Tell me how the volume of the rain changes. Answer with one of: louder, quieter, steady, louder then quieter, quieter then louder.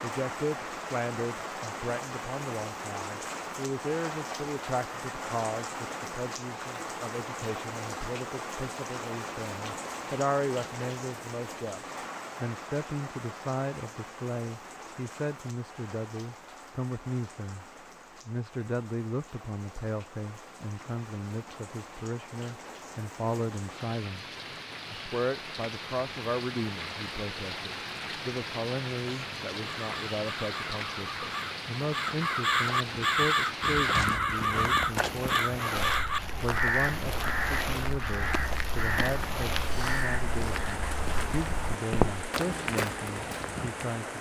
quieter then louder.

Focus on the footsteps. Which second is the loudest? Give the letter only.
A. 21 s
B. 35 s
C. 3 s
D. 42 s
D.